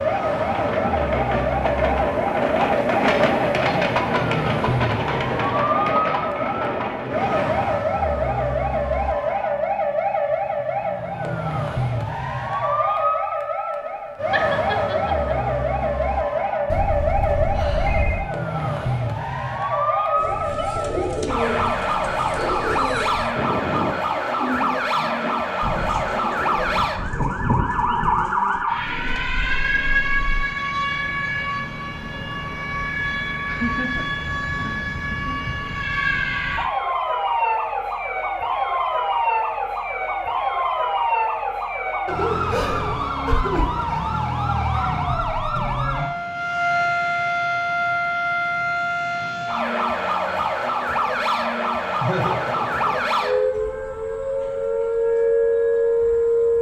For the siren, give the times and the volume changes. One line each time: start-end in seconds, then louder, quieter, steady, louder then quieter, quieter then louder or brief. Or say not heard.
0.0-56.5 steady.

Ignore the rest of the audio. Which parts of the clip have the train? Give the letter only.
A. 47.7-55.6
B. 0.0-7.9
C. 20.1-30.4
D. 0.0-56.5
B.